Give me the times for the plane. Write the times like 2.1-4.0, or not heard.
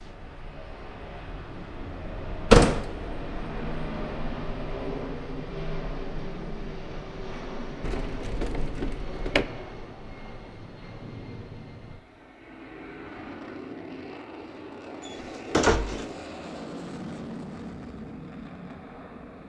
0.0-19.4.